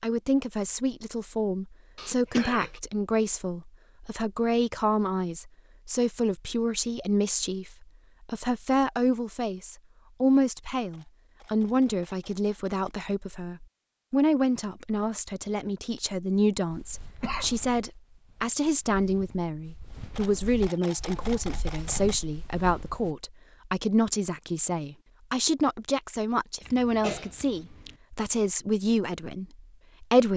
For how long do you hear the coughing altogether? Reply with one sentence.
The coughing can be heard for 3 seconds in total.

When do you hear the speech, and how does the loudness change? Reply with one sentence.
You can hear the speech from 0.0 to 30.3 s, at a steady volume.